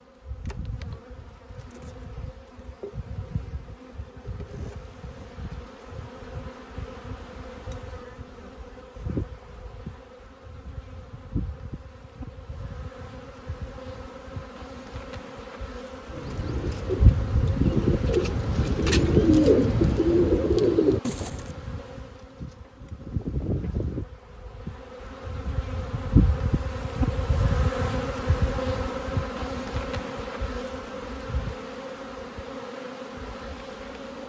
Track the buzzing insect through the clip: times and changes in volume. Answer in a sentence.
You can hear the buzzing insect from 0.0 to 34.2 s, getting louder.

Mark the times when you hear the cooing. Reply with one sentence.
The cooing can be heard from 16.1 to 21.4 s.